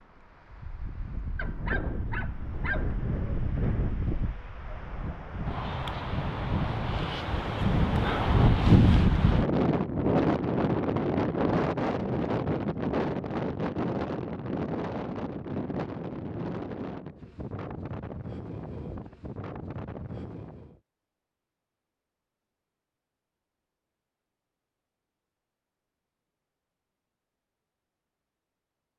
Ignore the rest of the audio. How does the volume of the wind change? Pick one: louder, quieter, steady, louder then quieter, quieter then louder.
louder then quieter.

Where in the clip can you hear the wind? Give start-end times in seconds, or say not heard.
0.0-20.8.